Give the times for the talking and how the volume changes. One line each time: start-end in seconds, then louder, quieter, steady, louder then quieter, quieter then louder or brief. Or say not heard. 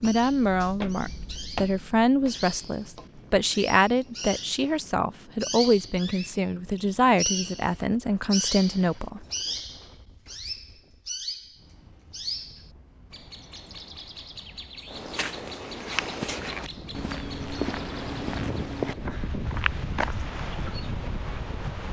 0.0-9.2 steady.